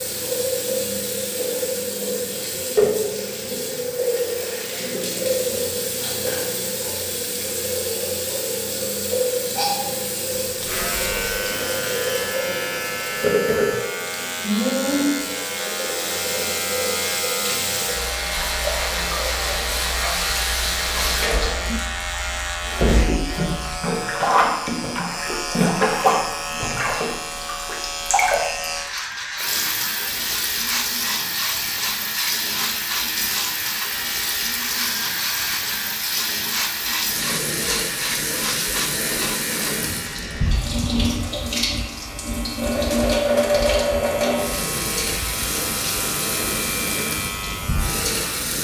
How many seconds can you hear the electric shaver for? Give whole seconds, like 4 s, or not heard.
38 s.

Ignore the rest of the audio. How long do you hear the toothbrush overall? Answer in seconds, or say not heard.
not heard.